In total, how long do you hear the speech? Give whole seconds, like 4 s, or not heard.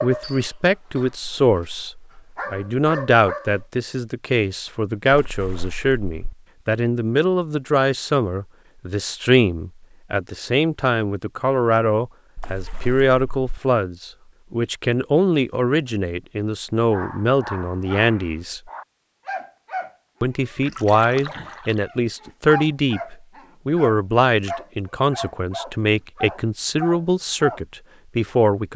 27 s.